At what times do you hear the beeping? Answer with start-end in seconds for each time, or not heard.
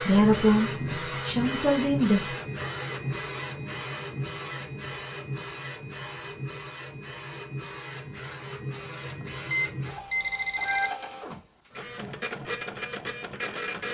9.2-10.9.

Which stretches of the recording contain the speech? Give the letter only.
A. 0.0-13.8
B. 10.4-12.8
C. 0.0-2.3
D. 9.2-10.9
C.